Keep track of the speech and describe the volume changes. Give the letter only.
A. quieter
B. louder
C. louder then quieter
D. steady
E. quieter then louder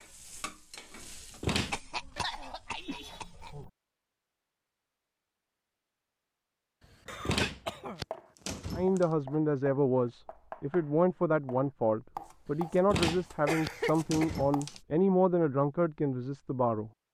D.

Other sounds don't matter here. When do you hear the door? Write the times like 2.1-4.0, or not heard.
1.4-2.2, 7.2-9.1, 12.9-14.8.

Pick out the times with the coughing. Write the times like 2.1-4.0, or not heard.
1.7-3.7, 7.0-8.0, 13.4-14.4.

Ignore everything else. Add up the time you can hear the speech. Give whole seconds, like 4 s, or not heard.
8 s.